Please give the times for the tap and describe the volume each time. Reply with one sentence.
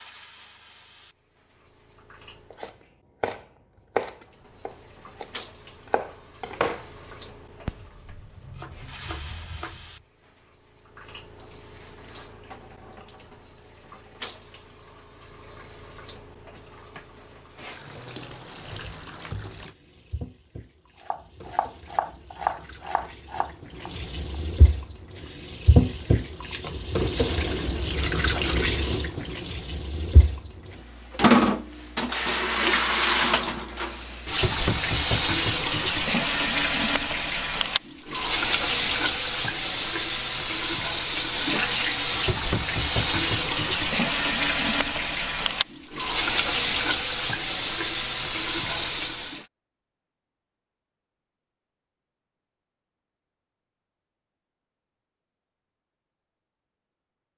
You can hear the tap briefly from 0.0 to 2.6 s; and from 4.2 to 49.5 s, getting louder.